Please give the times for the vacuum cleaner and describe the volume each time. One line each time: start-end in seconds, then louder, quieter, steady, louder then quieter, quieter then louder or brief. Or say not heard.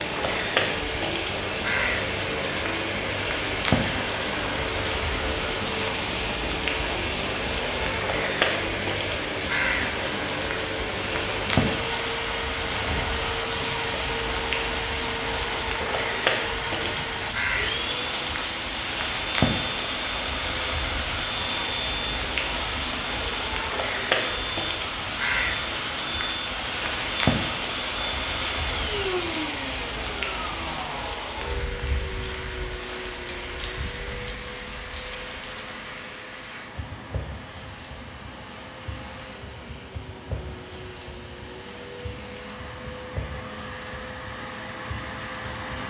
0.0-45.8 quieter.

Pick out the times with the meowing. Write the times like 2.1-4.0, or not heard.
not heard.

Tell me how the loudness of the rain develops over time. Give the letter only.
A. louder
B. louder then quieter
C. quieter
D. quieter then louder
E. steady
C.